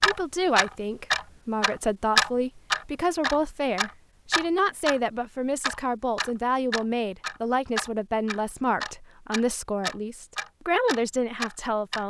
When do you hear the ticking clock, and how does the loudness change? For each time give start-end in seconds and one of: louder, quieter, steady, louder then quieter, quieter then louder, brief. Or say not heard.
0.0-12.0 quieter.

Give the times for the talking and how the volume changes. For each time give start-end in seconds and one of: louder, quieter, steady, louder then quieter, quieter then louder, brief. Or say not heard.
0.0-12.0 steady.